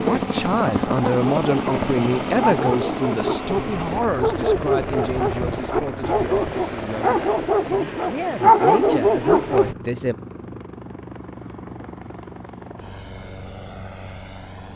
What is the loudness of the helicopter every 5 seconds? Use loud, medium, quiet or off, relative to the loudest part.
loud, medium, quiet.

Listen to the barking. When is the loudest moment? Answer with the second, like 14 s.
9 s.